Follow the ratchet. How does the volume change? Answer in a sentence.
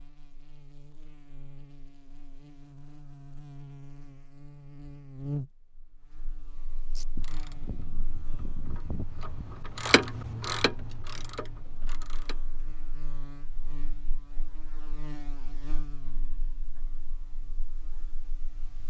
The loudness of the ratchet goes up, then down.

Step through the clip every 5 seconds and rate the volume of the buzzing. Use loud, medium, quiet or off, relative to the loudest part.
medium, loud, medium, medium.